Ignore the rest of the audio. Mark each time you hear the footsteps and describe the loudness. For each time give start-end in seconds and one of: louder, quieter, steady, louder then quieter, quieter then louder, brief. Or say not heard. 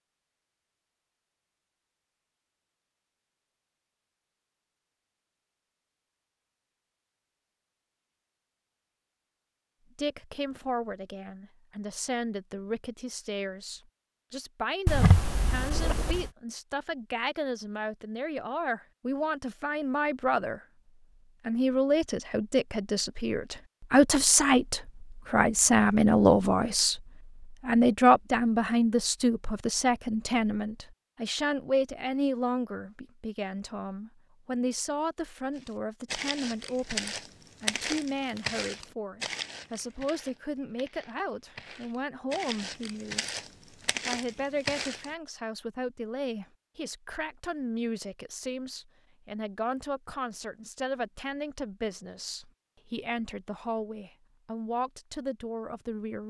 35.5-45.1 quieter then louder.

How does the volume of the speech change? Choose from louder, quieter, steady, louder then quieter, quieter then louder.
louder then quieter.